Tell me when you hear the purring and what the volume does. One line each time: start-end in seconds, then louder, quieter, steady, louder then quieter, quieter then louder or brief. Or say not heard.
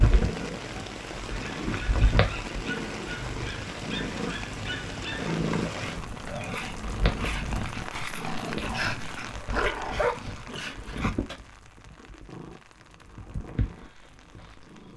0.0-14.9 quieter.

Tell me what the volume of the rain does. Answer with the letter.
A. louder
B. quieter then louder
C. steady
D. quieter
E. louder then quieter
D.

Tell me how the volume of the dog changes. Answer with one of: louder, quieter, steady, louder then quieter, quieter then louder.
louder.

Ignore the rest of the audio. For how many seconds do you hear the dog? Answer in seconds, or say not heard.
10 s.